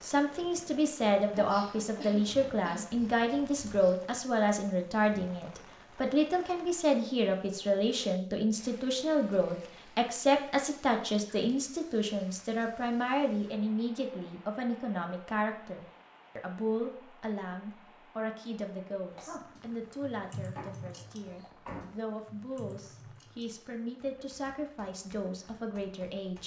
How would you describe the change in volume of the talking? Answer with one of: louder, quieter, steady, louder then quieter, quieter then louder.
quieter.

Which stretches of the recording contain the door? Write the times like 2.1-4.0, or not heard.
20.6-21.9.